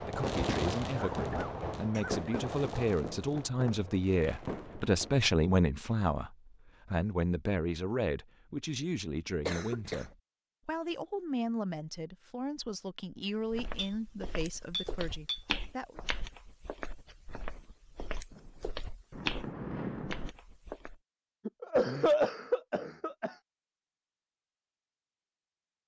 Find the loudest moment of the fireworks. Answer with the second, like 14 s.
1 s.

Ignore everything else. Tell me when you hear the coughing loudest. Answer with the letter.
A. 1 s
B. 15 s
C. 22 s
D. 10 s
C.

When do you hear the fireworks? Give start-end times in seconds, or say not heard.
0.0-5.2, 18.3-20.4.